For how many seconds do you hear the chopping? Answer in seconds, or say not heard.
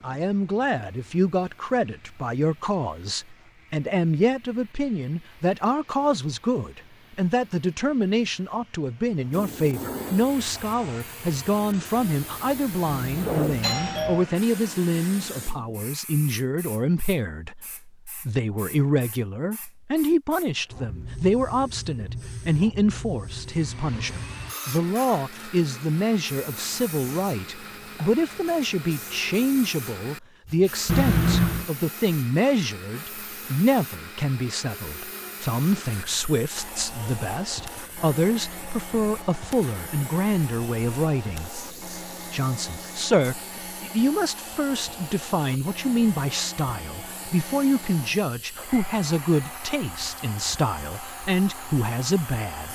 not heard.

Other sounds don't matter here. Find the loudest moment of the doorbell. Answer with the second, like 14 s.
31 s.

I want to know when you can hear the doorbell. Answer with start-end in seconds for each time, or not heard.
12.8-14.2, 30.9-31.6.